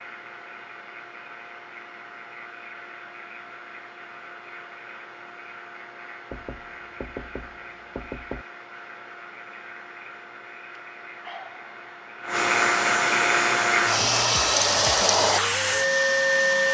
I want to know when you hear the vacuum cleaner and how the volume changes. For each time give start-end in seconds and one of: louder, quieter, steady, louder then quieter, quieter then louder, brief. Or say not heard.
0.0-16.6 louder.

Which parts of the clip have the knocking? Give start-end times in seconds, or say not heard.
6.3-8.4.